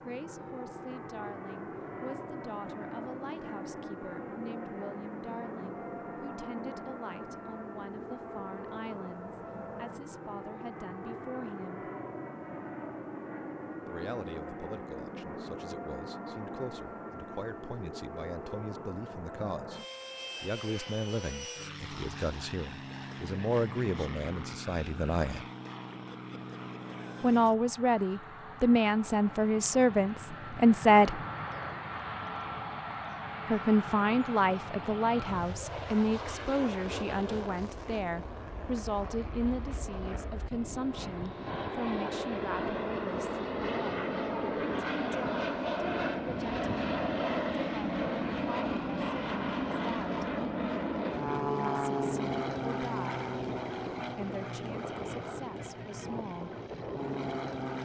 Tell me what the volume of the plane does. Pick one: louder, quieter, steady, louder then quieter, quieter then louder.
louder.